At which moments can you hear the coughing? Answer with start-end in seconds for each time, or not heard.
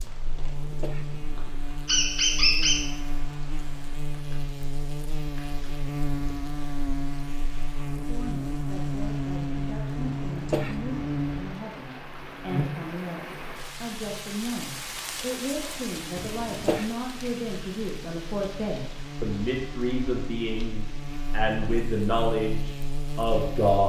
0.3-1.4, 10.2-11.1, 16.1-16.9.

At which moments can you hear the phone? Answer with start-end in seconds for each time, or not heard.
not heard.